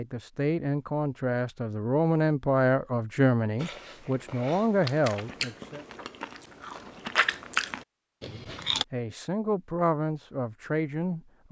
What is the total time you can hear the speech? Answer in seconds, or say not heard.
9 s.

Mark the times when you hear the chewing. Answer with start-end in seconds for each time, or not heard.
3.5-8.8.